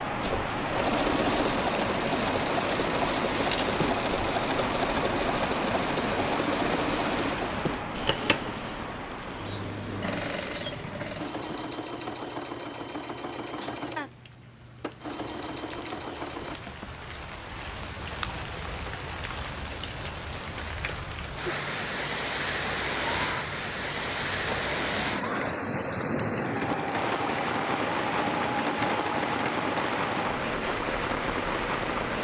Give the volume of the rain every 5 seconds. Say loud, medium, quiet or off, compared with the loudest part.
loud, loud, quiet, medium, loud, loud, loud.